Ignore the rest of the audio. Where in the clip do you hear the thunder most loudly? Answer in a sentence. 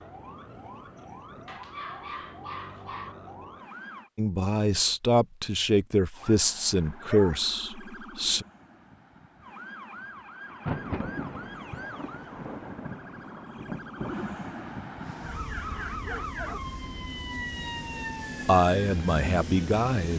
The loudest moment of the thunder is at 11 seconds.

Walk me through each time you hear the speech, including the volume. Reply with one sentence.
You can hear the speech from 4.2 to 8.4 s, getting quieter; and briefly from 18.4 to 20.1 s.